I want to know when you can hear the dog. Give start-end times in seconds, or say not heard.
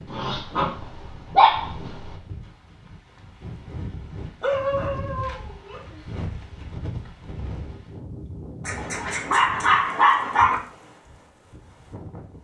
0.1-2.1, 4.4-6.2, 8.7-10.6.